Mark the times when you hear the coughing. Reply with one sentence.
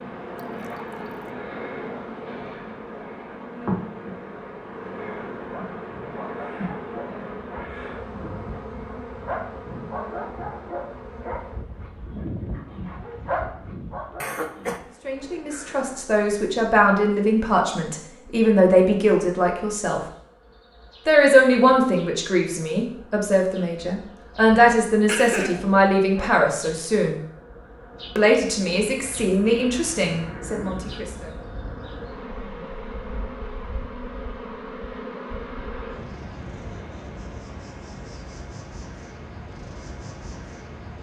You can hear the coughing from 14.2 to 14.8 s and from 25.1 to 25.6 s.